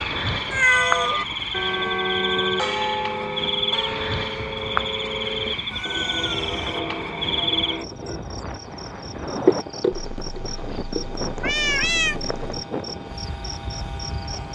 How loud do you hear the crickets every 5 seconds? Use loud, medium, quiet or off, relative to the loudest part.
loud, loud, medium.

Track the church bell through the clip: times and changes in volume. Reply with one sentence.
The church bell can be heard from 0.7 to 8.2 s, getting quieter.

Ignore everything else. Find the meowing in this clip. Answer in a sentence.
You can hear the meowing from 0.5 to 1.2 s, from 5.7 to 6.8 s and from 9.9 to 12.6 s.